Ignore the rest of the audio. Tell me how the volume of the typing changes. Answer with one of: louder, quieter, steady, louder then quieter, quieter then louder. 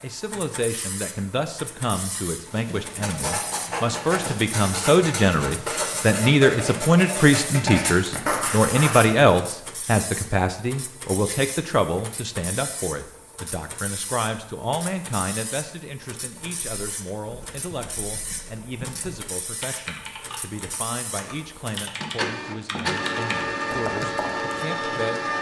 louder.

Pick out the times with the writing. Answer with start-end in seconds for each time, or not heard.
2.5-9.3.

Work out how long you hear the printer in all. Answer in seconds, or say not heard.
25 s.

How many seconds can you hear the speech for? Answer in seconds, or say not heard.
25 s.